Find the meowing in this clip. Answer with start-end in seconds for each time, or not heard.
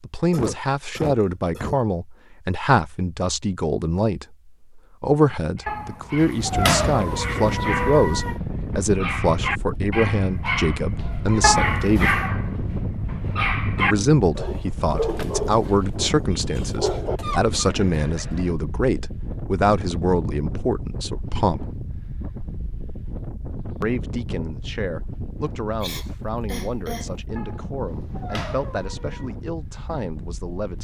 5.7-8.4, 11.4-12.3, 27.4-29.3.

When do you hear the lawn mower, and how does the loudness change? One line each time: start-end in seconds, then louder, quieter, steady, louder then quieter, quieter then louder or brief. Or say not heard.
not heard.